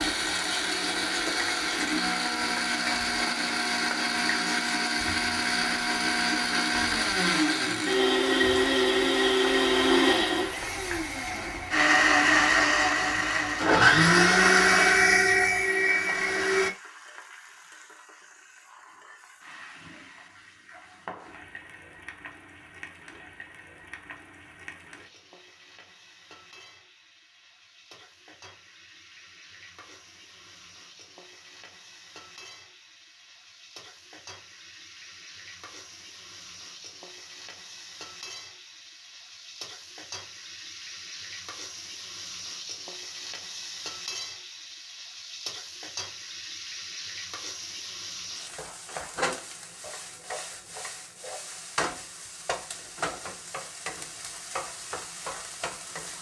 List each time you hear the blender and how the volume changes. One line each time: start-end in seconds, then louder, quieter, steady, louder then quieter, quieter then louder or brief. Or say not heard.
0.0-16.7 louder.